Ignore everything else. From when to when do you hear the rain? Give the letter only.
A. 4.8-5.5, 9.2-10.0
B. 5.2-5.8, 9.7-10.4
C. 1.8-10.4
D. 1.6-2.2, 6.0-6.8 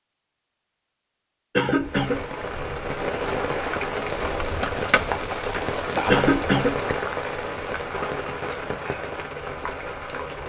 C.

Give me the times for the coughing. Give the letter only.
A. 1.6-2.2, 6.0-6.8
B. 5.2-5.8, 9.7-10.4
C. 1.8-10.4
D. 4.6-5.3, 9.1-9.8
A.